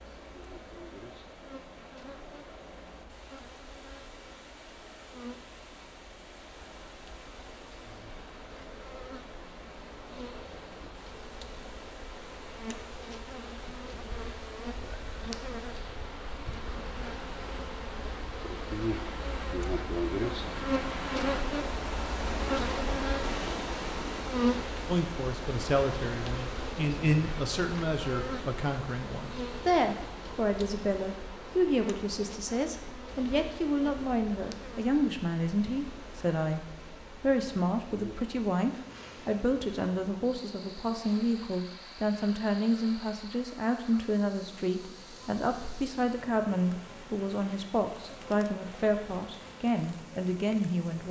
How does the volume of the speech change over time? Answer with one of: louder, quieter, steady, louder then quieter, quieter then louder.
steady.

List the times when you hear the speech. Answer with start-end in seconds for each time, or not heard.
24.9-51.0.